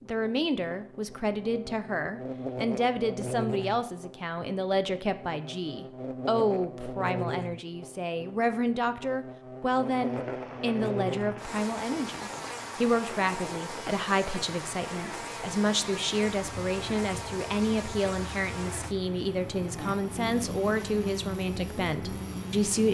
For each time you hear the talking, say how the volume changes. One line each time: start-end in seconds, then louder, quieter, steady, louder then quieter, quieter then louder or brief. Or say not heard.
0.0-22.8 steady.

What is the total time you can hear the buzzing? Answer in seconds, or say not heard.
23 s.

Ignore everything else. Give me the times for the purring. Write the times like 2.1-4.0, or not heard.
not heard.